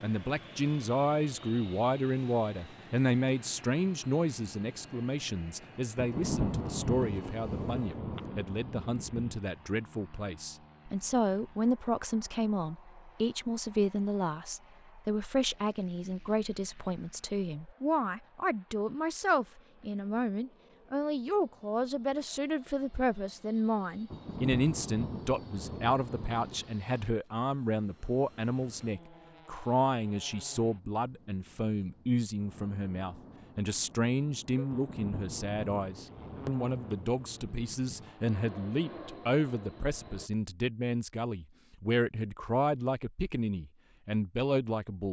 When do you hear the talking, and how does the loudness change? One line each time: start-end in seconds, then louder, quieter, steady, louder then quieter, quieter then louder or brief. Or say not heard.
0.0-45.0 steady.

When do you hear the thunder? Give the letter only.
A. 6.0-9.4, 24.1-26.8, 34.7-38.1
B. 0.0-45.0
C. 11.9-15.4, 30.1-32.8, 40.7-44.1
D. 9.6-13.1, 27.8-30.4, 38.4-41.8
A.